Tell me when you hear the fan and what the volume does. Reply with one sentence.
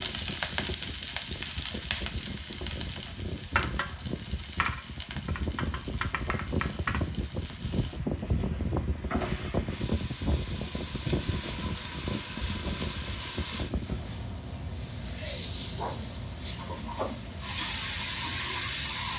The fan can be heard from 0.0 to 19.1 s, getting louder then quieter.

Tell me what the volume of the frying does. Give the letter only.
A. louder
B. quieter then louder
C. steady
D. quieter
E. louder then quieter
B.